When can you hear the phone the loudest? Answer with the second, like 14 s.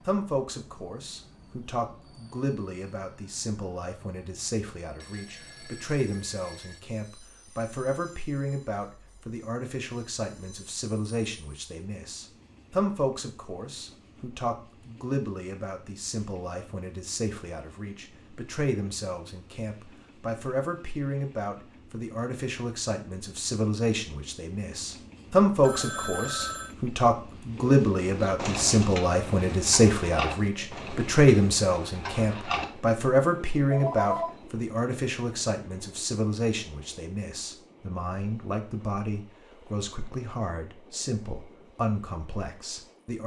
34 s.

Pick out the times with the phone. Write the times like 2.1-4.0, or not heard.
5.0-6.8, 25.6-26.8, 33.7-34.4.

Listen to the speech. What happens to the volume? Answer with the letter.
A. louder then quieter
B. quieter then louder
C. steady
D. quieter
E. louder
A.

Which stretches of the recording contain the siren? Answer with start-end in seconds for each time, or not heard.
not heard.